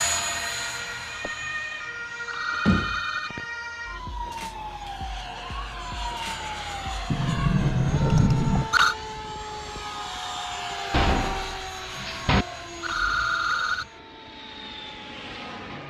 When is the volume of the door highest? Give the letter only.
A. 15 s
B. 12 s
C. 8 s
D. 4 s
C.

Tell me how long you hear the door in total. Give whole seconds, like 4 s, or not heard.
4 s.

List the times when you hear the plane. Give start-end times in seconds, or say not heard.
0.0-15.8.